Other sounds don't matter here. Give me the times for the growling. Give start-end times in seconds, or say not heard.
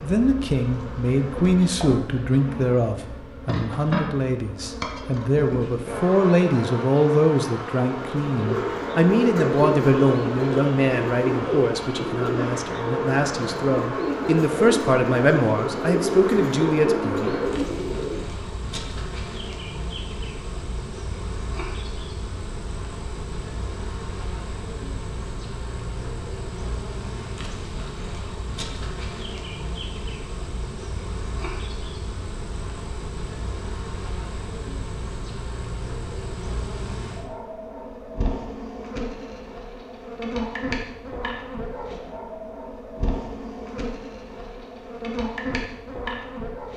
not heard.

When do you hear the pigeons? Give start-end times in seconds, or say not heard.
7.9-18.2.